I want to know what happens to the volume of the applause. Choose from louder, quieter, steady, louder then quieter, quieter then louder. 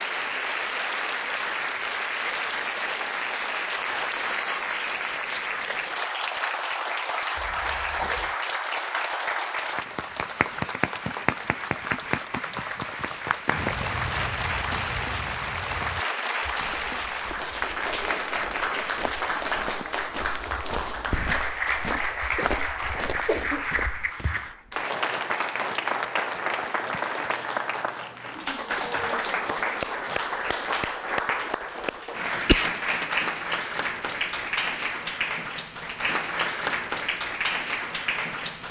steady.